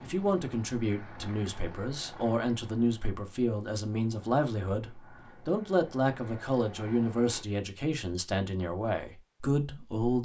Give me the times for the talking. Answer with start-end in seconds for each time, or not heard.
0.0-10.2.